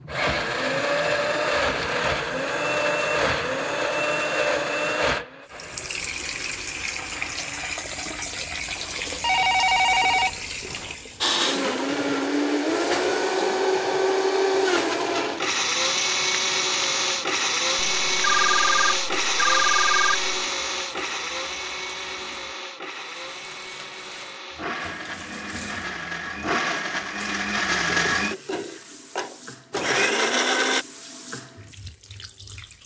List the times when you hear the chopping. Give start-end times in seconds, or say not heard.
not heard.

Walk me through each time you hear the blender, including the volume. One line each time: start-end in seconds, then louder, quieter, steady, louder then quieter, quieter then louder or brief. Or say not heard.
0.0-9.2 quieter
11.2-30.9 quieter then louder.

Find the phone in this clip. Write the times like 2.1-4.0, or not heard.
9.2-10.9, 17.8-20.2.